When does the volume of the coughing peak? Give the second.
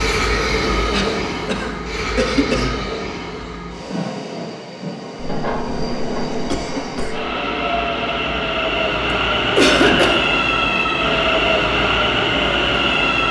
10 s.